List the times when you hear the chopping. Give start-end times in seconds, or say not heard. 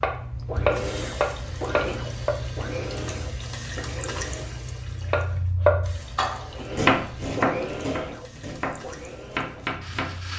0.0-2.4, 5.1-10.2.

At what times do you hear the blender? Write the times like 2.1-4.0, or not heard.
0.2-4.7, 6.5-10.3.